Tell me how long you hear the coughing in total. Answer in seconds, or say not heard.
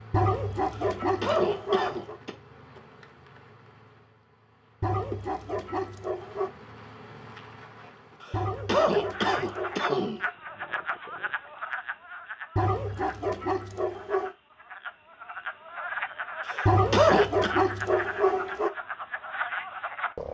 5 s.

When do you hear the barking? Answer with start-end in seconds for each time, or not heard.
0.1-2.1, 4.8-6.5, 8.3-10.3, 12.6-14.3, 16.6-18.7.